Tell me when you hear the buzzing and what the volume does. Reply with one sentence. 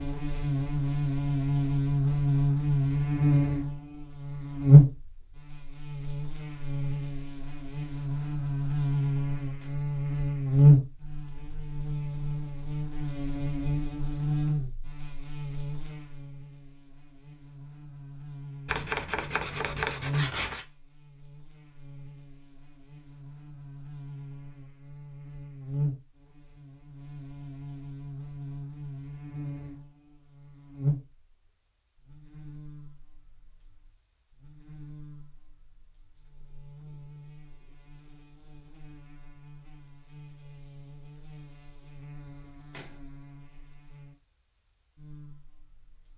You can hear the buzzing from 0.0 to 46.1 s, getting quieter.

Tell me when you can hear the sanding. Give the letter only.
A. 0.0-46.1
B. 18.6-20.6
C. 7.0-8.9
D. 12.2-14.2
B.